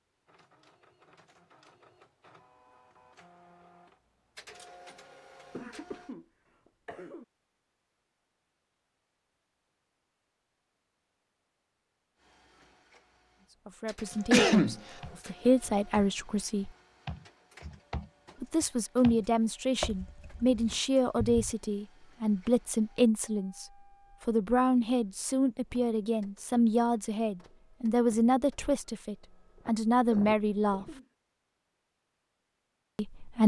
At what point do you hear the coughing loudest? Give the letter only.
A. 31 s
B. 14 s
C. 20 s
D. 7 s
B.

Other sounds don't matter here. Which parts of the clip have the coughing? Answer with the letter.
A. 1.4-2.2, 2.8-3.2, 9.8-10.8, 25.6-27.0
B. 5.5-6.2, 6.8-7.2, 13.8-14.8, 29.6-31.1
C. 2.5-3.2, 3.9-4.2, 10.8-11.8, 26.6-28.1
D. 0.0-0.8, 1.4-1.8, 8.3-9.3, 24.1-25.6
B.